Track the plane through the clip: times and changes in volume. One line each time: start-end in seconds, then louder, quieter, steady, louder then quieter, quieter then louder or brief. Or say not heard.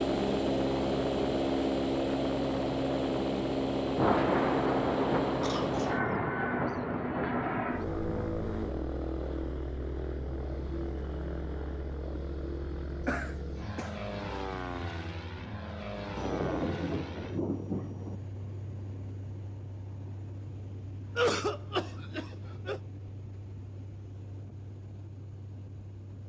0.0-26.2 quieter.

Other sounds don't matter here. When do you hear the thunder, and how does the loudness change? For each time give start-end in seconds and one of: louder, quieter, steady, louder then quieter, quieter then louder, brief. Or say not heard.
4.0-8.3 quieter
16.1-18.2 brief.